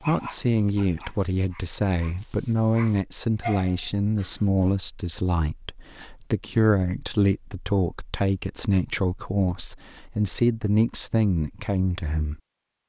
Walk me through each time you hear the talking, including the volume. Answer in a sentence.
The talking can be heard from 0.1 to 12.4 s, at a steady volume.